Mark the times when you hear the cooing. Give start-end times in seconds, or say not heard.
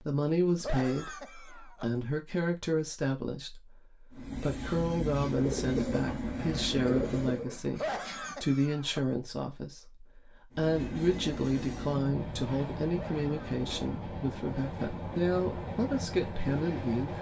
5.2-8.3.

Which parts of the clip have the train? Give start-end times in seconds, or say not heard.
4.1-7.5, 10.5-17.1.